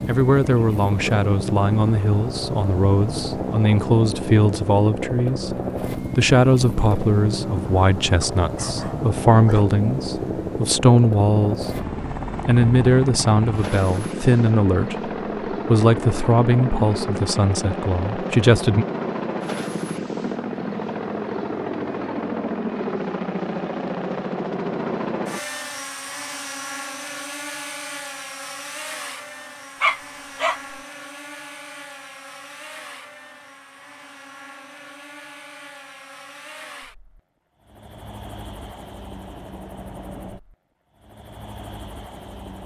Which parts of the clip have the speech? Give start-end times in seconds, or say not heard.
0.1-11.8, 12.4-18.9.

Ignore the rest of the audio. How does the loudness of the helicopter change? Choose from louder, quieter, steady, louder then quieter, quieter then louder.
quieter.